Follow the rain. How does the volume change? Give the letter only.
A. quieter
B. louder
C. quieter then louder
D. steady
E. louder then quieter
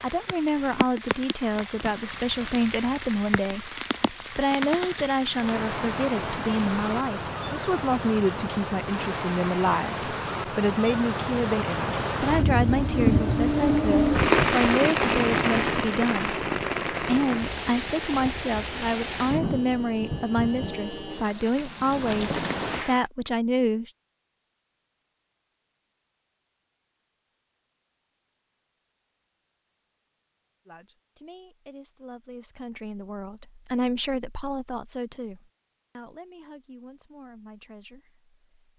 E.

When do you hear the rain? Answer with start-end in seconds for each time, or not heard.
0.0-23.1.